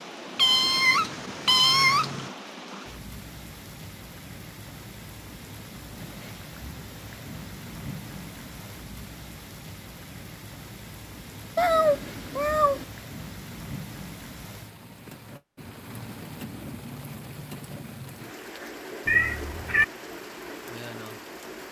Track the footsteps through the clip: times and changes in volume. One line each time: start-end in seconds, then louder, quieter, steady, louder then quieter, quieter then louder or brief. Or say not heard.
not heard.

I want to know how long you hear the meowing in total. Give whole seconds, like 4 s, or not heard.
4 s.